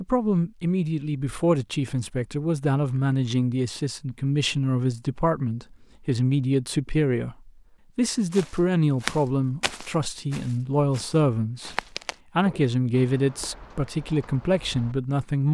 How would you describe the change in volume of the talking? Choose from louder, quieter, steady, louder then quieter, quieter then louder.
steady.